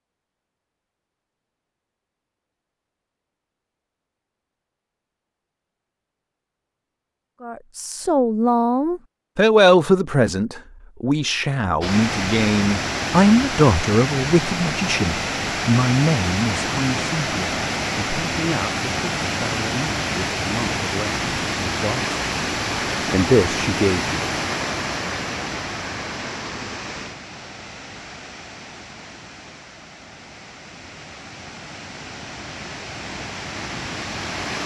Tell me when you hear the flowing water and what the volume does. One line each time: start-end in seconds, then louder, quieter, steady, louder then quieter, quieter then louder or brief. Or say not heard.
11.8-34.6 quieter.